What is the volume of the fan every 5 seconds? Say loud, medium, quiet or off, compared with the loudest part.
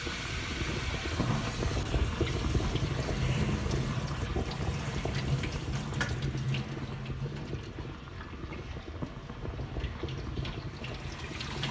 loud, medium, medium.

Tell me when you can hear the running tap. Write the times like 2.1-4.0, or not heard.
0.0-11.6.